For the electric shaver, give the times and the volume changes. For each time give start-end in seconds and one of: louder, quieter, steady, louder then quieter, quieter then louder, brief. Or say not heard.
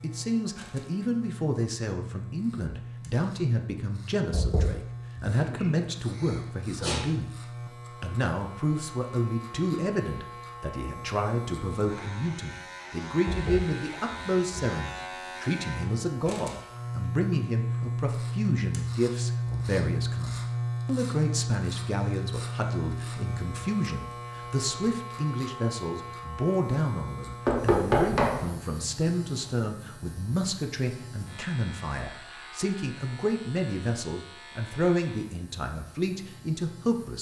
0.0-37.1 louder then quieter.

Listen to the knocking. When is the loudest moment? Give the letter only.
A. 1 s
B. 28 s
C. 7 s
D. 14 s
B.